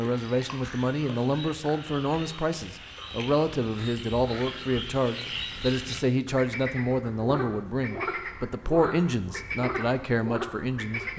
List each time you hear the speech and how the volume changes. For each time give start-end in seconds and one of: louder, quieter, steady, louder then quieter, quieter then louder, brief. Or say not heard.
0.0-11.1 steady.